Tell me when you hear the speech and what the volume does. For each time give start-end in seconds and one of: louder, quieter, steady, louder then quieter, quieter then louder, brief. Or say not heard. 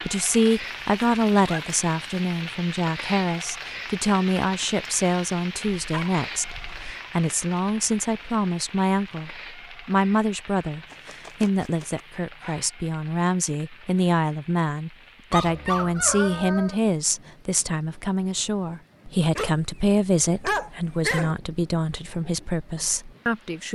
0.1-23.7 steady.